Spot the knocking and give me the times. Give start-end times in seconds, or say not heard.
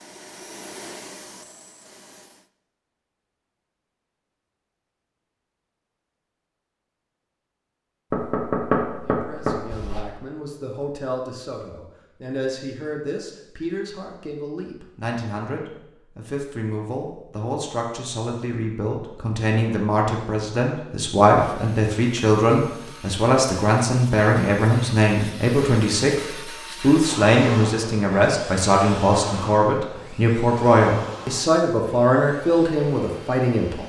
8.1-10.1.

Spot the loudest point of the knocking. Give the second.
9 s.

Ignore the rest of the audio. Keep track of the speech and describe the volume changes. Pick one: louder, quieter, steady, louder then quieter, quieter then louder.
louder.